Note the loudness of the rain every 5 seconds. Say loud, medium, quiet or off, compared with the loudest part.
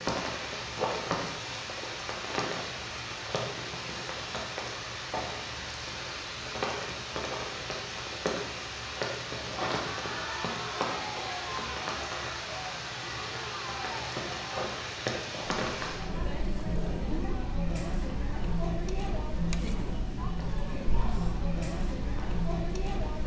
loud, loud, loud, medium, quiet.